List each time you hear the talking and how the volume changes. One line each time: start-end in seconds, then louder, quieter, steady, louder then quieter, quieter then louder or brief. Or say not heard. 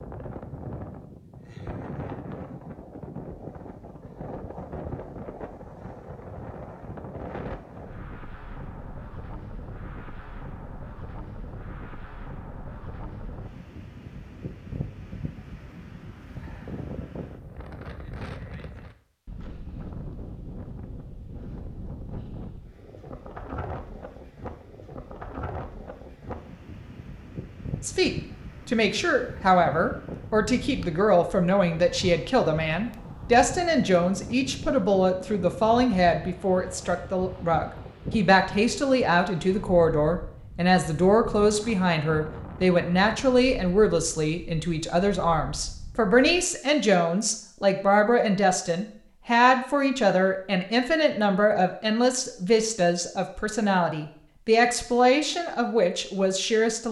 27.8-56.8 steady.